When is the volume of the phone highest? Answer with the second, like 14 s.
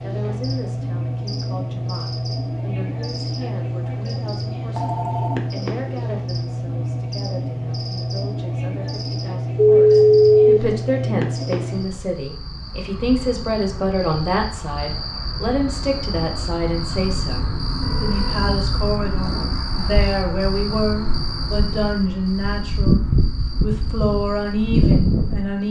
10 s.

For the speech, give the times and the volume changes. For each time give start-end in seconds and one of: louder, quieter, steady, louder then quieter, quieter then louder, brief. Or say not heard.
0.0-23.0 louder
23.6-25.6 brief.